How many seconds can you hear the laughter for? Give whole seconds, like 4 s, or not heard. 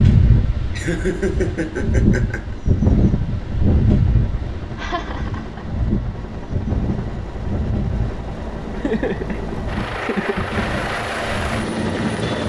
5 s.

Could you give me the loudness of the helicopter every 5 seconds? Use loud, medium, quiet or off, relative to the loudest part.
quiet, medium, loud.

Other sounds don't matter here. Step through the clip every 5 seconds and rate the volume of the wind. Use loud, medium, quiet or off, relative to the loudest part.
loud, medium, medium.